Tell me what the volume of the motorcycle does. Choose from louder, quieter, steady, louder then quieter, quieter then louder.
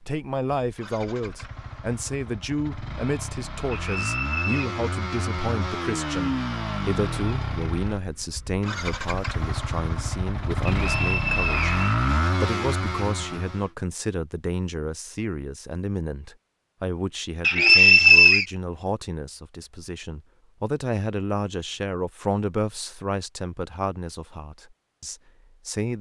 louder.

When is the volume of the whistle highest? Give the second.
18 s.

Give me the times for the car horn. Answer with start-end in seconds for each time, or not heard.
not heard.